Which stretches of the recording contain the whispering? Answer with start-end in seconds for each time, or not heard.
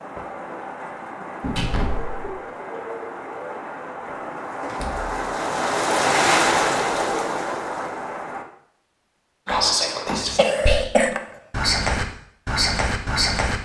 9.4-13.6.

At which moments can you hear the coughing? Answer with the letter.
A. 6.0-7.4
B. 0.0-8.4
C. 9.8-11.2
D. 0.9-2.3
C.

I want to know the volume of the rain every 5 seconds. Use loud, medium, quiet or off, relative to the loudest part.
medium, loud, off.